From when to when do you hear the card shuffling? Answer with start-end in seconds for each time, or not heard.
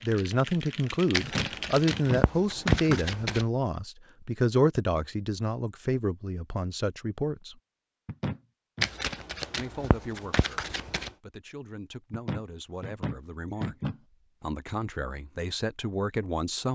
1.1-3.5, 8.8-11.1.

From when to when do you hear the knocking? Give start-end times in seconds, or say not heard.
1.2-3.0, 8.1-8.9, 12.1-14.0.